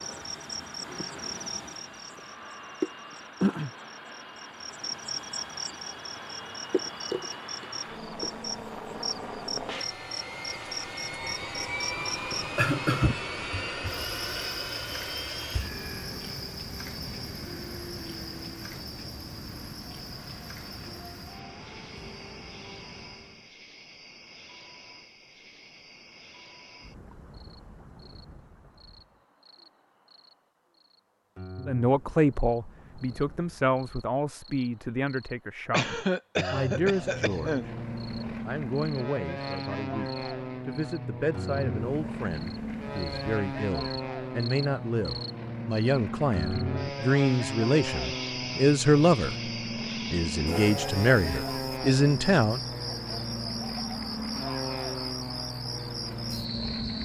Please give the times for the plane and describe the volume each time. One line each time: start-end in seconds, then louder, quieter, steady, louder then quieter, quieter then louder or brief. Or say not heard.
0.0-23.5 louder then quieter
36.8-57.0 steady.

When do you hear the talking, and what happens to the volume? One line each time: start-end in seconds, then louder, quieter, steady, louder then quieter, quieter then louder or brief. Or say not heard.
31.6-37.7 quieter then louder
38.5-49.5 louder
50.1-52.6 brief.